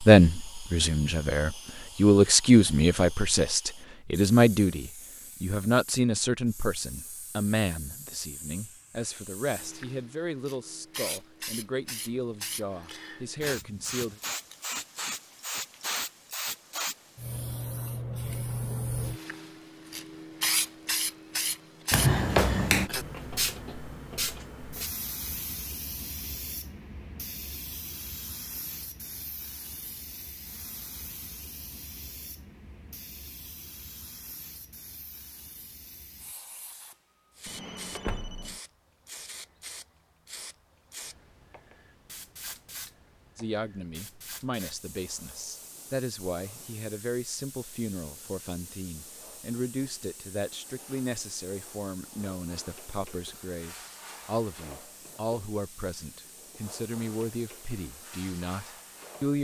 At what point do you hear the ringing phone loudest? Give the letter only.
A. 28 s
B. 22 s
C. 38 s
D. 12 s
B.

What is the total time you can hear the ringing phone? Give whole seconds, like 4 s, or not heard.
2 s.